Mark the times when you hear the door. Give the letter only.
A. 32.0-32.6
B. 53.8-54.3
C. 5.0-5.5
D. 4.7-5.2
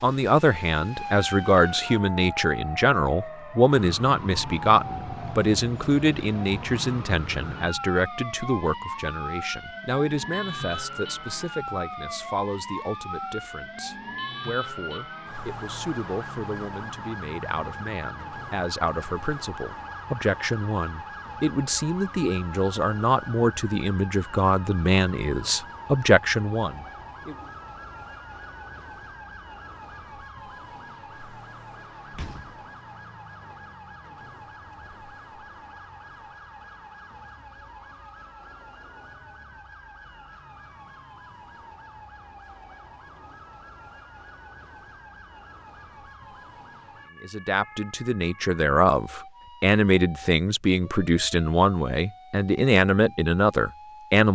A.